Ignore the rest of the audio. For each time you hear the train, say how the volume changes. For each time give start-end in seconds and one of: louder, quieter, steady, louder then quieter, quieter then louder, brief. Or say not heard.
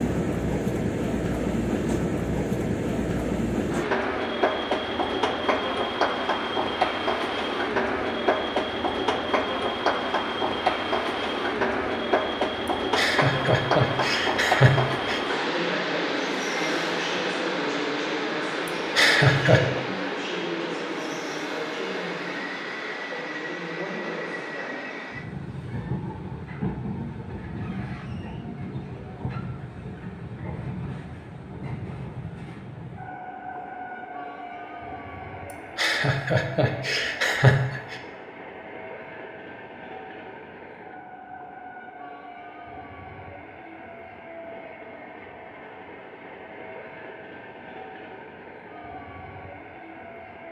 0.0-50.4 quieter.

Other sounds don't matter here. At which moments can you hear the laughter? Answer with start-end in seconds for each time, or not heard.
12.9-15.2, 18.6-19.6, 35.8-38.0.